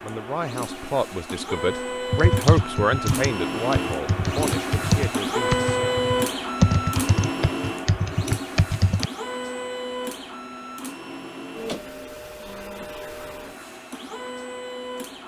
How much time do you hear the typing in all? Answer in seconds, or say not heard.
7 s.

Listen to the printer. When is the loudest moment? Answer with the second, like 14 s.
6 s.